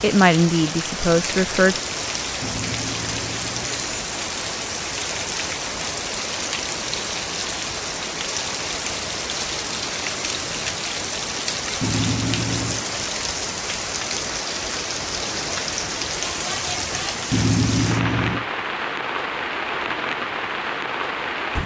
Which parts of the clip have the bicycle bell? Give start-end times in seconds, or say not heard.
2.4-3.9, 11.8-12.8, 17.3-18.4.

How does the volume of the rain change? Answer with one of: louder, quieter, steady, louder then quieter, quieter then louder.
steady.